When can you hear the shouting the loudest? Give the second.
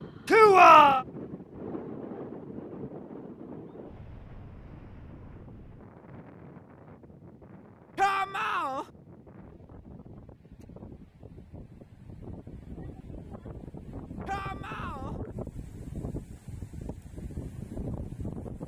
1 s.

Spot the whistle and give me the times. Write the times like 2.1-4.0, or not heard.
not heard.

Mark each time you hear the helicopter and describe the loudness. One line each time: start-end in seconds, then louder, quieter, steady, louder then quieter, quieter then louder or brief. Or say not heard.
not heard.